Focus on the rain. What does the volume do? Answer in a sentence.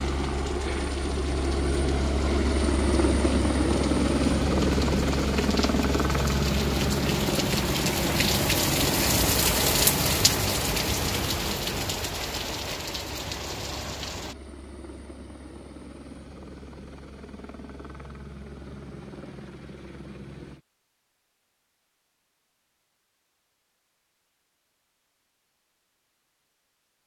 The loudness of the rain goes up, then down.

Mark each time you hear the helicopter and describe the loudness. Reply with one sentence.
The helicopter can be heard from 0.0 to 20.6 s, getting quieter.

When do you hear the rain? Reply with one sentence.
The rain can be heard from 0.0 to 14.3 s.